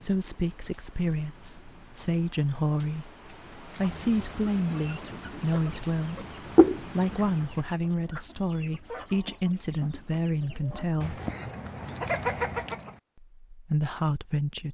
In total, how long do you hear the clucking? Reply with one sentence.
The clucking can be heard for 9 seconds in total.